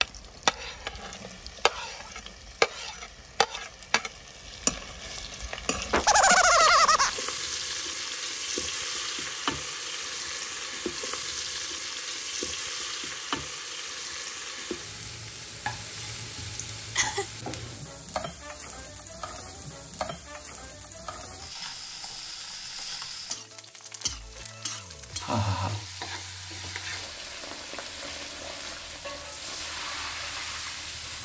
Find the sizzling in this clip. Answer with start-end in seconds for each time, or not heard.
0.0-31.1.